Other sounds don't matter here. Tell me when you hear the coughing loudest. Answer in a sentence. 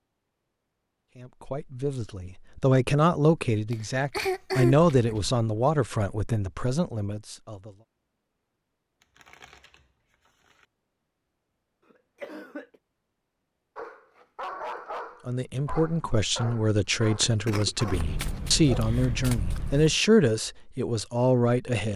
The volume of the coughing peaks at 5 seconds.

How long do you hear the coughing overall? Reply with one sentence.
You can hear the coughing for 3 seconds altogether.